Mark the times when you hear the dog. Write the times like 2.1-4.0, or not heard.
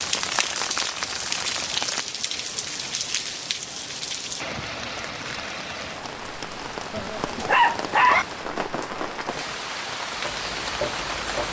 6.9-8.2.